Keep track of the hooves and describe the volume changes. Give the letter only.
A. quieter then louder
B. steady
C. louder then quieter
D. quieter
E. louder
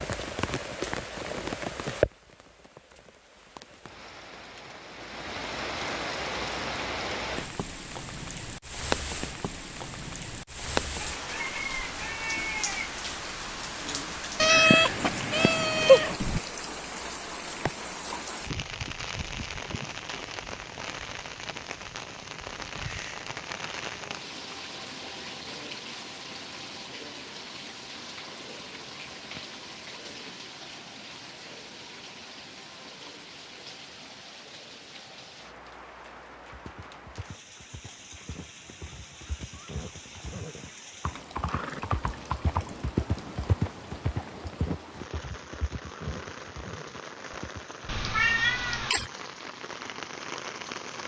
C.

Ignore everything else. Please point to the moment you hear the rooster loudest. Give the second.
12 s.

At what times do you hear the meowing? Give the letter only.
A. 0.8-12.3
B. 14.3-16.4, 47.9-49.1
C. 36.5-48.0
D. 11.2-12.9
B.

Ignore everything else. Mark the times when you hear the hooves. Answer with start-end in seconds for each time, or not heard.
36.5-48.0.